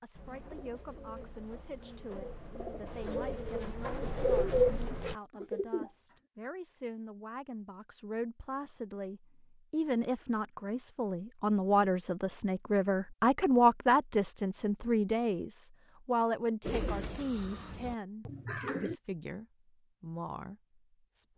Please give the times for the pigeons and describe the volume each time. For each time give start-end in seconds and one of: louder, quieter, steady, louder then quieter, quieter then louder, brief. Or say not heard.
0.1-5.9 louder
16.6-18.9 brief.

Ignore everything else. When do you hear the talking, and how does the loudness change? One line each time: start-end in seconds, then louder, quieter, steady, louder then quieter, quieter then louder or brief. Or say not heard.
0.0-21.3 louder then quieter.